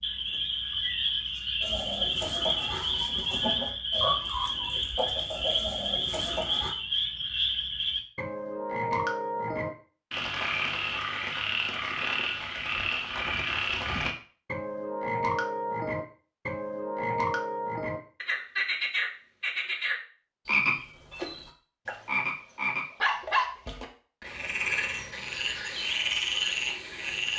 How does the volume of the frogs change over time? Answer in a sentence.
The volume of the frogs stays about the same.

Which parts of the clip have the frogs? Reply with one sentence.
The frogs can be heard from 0.0 to 27.3 s.